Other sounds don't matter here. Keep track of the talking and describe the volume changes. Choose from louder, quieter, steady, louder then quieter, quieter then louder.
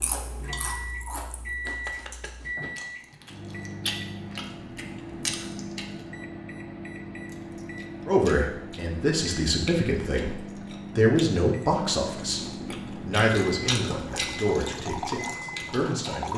quieter.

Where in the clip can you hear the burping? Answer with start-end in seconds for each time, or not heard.
not heard.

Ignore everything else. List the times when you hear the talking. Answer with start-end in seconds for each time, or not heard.
8.1-12.4, 13.0-16.3.